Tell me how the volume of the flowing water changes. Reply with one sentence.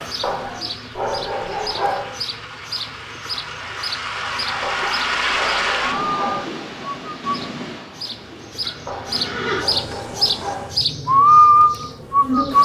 The volume of the flowing water goes up, then down.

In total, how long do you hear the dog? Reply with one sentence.
The dog can be heard for 6 seconds in total.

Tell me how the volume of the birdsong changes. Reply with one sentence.
The volume of the birdsong goes up.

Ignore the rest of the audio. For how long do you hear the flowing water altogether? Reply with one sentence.
You can hear the flowing water for 11 seconds altogether.